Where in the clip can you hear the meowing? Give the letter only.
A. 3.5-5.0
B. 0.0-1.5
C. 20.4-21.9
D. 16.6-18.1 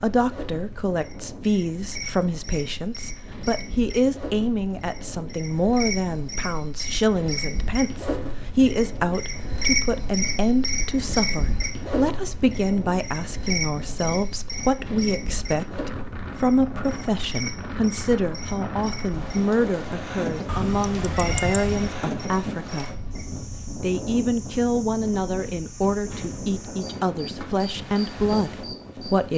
C.